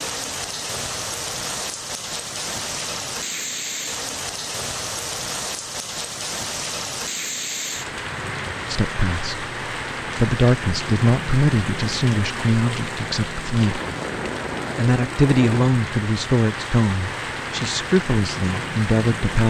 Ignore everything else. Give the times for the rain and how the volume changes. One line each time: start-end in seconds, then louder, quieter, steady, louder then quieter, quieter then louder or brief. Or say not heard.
0.0-19.4 steady.